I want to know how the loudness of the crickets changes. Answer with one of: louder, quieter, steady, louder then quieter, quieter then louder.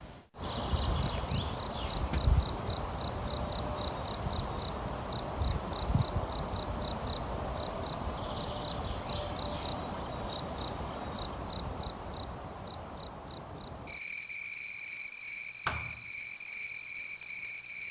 quieter.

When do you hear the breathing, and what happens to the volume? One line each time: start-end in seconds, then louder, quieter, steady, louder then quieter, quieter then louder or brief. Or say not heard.
not heard.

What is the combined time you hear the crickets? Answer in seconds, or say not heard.
18 s.